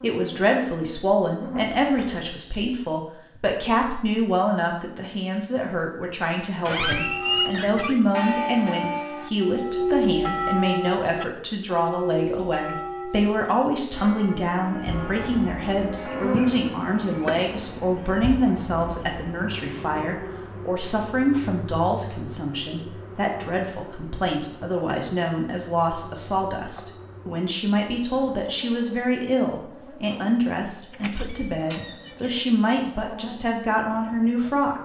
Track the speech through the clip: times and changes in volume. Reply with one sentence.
You can hear the speech from 0.0 to 34.8 s, at a steady volume.